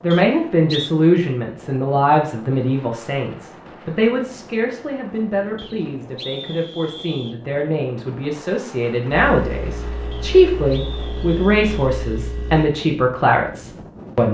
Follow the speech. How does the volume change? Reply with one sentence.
The volume of the speech goes down, then up.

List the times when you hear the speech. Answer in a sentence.
You can hear the speech from 0.0 to 14.2 s.